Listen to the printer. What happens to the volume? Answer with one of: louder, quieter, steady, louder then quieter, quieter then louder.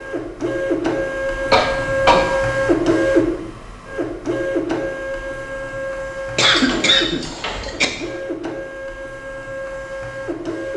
quieter.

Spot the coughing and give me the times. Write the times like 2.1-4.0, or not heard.
1.5-2.3, 6.3-7.8.